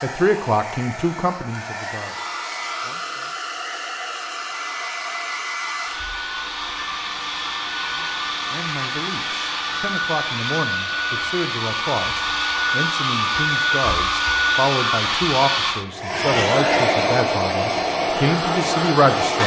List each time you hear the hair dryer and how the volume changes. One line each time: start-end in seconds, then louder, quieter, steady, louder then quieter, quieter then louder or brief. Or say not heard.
0.0-19.4 louder.